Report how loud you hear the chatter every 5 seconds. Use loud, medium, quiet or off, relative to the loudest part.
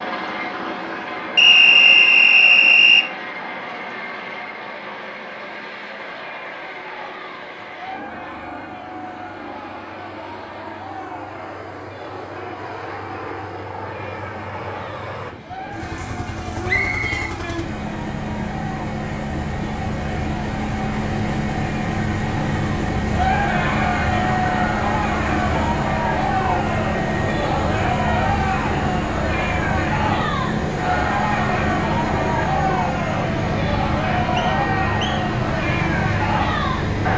off, quiet, quiet, quiet, loud, loud, loud, loud.